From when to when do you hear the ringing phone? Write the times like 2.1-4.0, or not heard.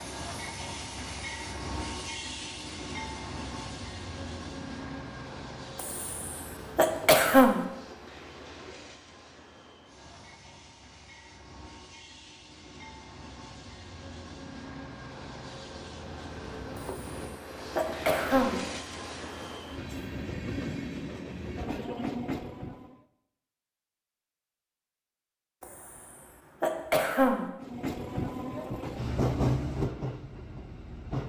not heard.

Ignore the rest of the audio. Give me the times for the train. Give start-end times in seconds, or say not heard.
0.0-23.0, 27.6-31.2.